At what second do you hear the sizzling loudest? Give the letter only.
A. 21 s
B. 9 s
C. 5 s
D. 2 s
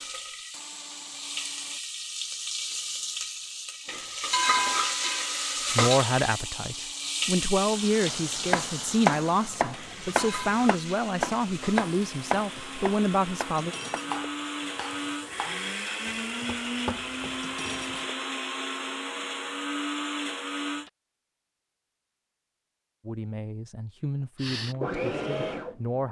C.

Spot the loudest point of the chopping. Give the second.
9 s.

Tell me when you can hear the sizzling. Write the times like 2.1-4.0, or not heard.
0.0-18.2.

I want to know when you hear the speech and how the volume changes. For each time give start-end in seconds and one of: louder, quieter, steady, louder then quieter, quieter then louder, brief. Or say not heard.
5.7-13.8 steady
23.1-26.0 brief.